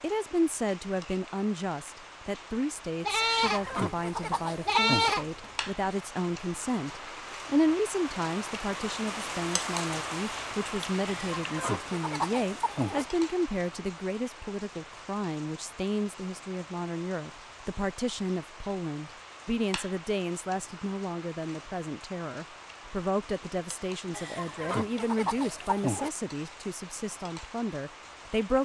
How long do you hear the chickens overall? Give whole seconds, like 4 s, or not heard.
6 s.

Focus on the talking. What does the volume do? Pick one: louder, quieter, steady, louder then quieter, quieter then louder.
steady.